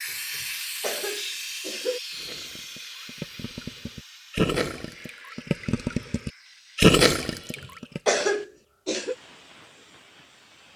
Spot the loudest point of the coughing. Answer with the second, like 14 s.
8 s.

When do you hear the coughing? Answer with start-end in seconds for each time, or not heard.
0.1-2.0, 7.5-9.2.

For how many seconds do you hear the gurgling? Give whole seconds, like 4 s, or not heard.
6 s.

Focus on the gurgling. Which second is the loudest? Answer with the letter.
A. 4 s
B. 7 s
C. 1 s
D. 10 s
B.